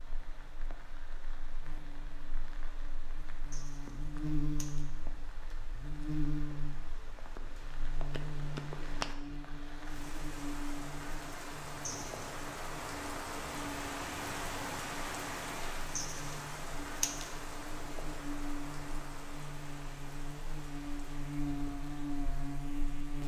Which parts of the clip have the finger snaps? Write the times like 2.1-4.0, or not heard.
8.1-9.4.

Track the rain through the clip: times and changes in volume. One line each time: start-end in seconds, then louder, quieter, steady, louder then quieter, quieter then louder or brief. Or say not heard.
0.0-23.2 louder then quieter.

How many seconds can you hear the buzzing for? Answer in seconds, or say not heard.
23 s.